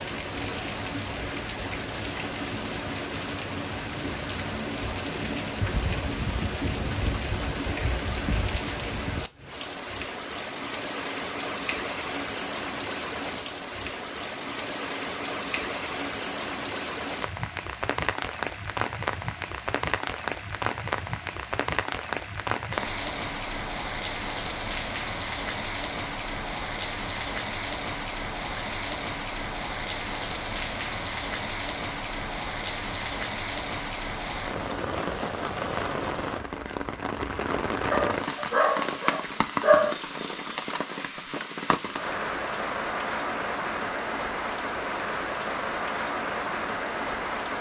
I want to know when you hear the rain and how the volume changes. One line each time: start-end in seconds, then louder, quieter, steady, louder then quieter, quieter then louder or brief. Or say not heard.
0.0-47.5 steady.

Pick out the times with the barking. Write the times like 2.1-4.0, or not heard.
37.9-39.9.